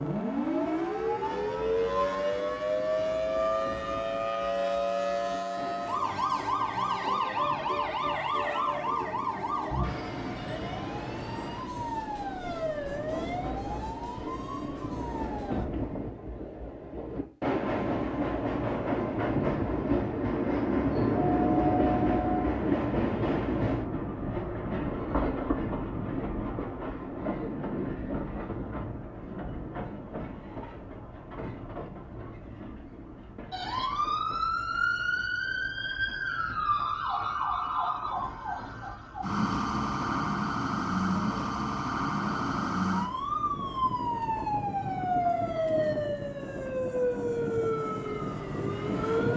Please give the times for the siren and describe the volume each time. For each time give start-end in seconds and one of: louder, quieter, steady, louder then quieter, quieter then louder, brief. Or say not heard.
0.0-15.7 quieter
33.5-49.3 steady.